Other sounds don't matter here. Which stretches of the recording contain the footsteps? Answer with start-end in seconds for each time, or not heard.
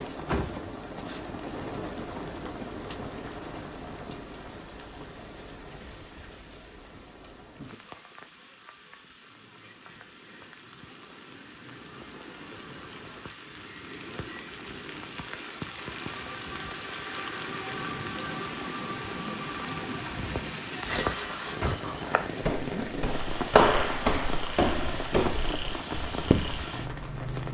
20.8-26.6.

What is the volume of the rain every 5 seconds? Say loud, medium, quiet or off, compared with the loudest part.
loud, quiet, medium, loud, loud, loud.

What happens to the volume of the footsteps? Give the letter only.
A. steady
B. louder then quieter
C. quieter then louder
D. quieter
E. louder
B.